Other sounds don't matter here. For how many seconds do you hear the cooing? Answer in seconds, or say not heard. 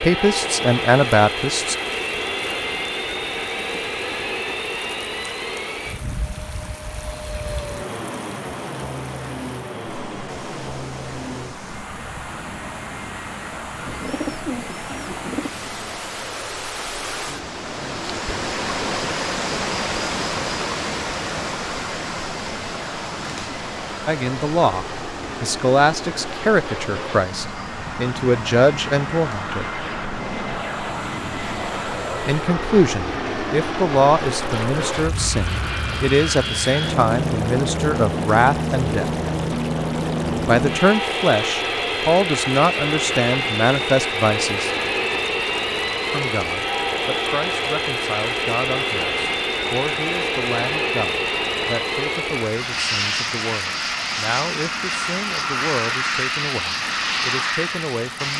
2 s.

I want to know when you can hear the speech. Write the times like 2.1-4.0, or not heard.
0.0-1.8, 24.1-29.6, 32.2-39.1, 40.5-44.7, 46.1-58.3.